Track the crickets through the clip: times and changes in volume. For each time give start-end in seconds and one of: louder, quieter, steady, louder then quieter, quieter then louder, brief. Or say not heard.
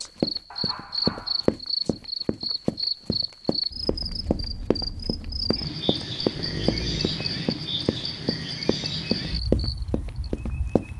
0.0-10.9 steady.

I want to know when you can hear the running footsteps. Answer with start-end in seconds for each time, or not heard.
0.2-10.9.